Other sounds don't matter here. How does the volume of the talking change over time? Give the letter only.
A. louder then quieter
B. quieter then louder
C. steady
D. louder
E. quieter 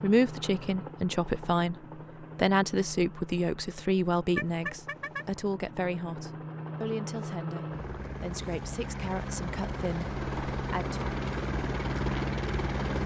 E.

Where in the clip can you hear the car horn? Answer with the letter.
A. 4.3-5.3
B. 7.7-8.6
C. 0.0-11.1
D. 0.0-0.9
A.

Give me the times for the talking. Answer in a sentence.
You can hear the talking from 0.0 to 11.1 s.